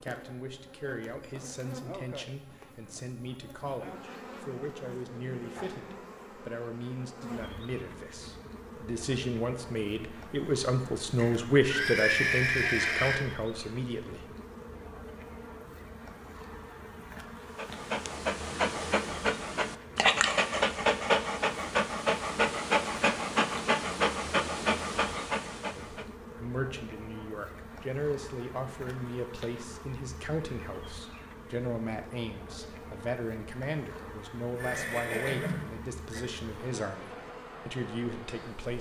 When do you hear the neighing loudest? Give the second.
12 s.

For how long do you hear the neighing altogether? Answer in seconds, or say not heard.
4 s.